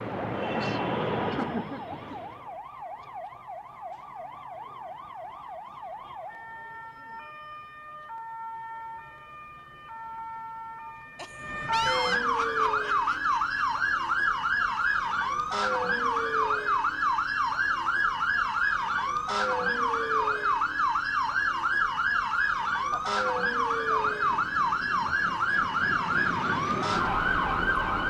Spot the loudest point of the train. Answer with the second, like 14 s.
1 s.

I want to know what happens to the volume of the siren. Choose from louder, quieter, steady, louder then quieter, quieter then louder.
louder.